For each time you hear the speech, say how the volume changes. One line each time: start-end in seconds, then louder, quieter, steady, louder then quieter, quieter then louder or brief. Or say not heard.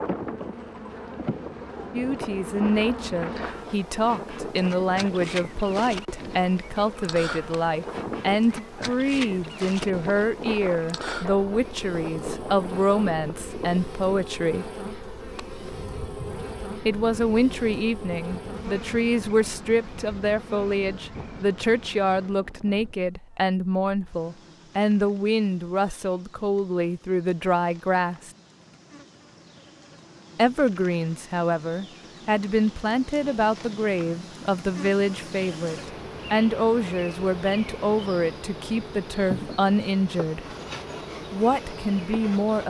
1.9-14.7 steady
16.9-28.3 steady
30.4-40.5 steady
41.3-42.6 brief.